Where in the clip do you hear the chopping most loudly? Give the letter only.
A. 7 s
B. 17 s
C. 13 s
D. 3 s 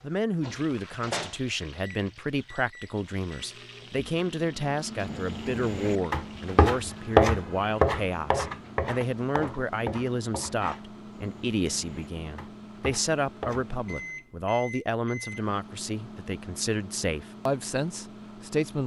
A.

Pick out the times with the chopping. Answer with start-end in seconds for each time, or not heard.
5.0-13.8.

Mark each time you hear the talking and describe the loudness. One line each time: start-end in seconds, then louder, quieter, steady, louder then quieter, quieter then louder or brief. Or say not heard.
0.0-18.8 steady.